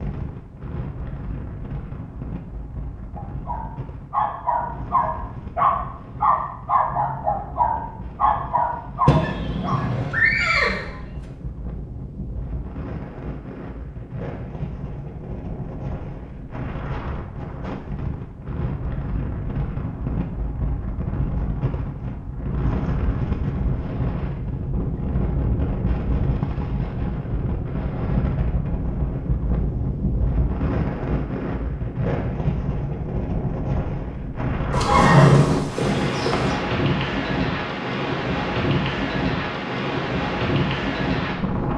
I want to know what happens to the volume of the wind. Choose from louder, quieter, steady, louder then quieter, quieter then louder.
louder.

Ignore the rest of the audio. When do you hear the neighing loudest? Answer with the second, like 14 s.
35 s.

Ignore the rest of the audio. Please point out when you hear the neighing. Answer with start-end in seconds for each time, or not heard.
9.1-10.8, 34.7-36.5.